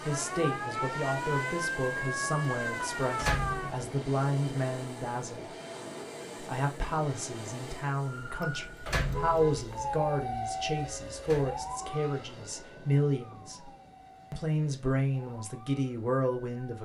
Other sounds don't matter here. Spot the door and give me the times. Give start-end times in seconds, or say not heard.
3.1-3.8, 8.8-9.6, 11.2-11.8.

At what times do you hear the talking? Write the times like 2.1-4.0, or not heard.
0.1-5.5, 6.4-13.7, 14.3-16.8.